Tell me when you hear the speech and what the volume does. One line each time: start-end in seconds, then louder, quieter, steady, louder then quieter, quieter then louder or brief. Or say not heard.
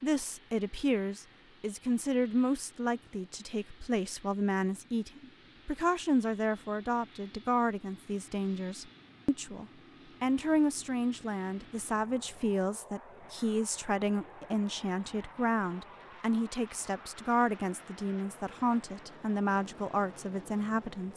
0.0-21.1 steady.